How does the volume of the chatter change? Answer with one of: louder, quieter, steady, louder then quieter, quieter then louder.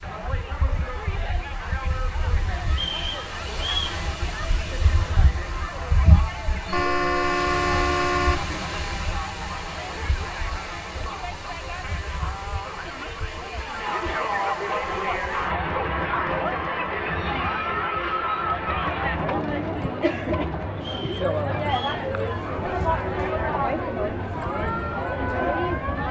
louder.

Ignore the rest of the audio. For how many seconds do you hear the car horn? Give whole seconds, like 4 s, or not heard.
2 s.